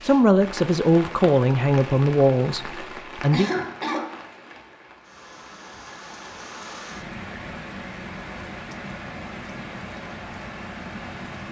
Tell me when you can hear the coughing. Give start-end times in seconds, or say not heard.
3.3-4.2.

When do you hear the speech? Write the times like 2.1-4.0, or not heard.
0.0-3.5.